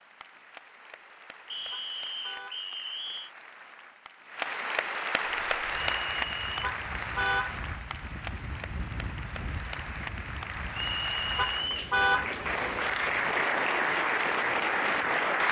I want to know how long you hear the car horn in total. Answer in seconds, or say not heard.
3 s.